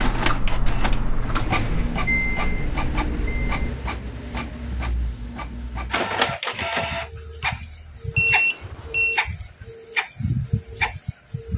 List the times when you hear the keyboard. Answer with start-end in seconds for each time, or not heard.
0.0-2.0.